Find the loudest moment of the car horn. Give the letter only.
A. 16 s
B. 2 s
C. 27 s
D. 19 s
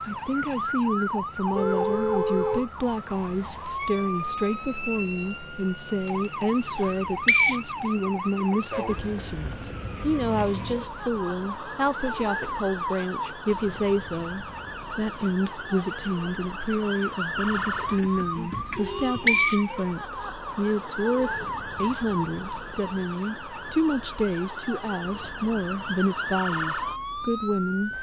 B.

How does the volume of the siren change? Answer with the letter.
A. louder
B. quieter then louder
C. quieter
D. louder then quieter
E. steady
E.